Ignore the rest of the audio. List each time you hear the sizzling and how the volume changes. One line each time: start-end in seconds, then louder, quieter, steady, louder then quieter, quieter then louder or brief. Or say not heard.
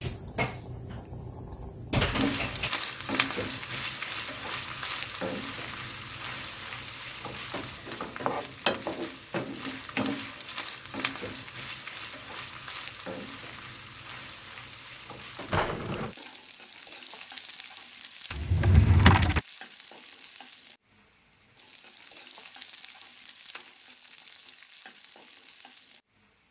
2.1-26.4 quieter.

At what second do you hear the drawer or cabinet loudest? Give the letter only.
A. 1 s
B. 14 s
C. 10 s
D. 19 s
D.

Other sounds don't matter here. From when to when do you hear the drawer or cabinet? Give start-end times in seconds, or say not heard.
0.0-2.7, 15.5-16.1, 18.3-19.4.